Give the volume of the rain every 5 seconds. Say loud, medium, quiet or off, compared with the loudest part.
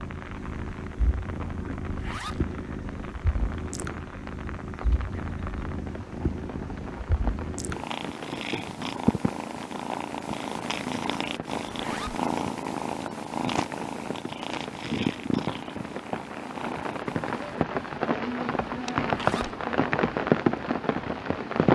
quiet, quiet, quiet, medium, loud.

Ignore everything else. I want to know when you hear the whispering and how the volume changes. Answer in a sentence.
The whispering can't be heard in this clip.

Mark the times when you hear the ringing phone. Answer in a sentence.
The ringing phone can't be heard in this clip.